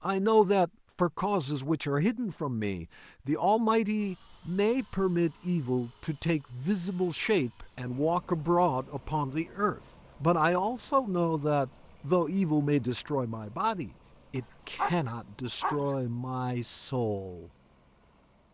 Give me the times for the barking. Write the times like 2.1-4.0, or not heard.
14.3-15.9.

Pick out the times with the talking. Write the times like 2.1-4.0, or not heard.
0.0-17.5.